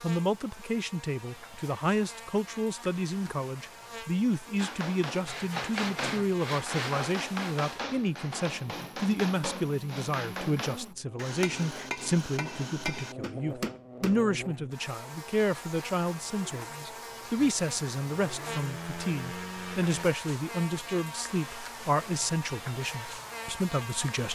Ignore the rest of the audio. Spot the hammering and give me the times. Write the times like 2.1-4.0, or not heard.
4.5-14.2.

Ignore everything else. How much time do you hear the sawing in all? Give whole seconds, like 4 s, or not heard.
5 s.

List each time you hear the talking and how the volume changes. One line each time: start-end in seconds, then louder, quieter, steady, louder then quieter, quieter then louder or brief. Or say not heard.
0.0-24.2 steady.